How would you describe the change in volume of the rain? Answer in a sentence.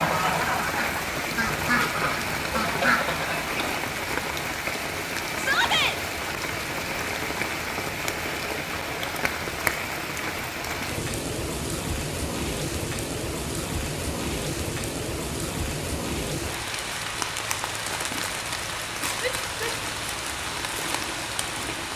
The loudness of the rain stays about the same.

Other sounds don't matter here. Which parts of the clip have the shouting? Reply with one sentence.
The shouting can be heard from 5.3 to 6.0 s and from 19.2 to 19.8 s.